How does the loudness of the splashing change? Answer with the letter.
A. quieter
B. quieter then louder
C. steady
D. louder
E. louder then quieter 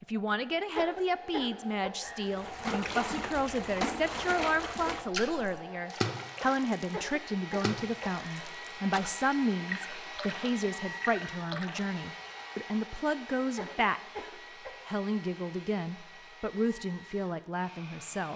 A.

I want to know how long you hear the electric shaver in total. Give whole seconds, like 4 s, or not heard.
not heard.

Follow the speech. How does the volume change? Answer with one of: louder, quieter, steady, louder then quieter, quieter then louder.
steady.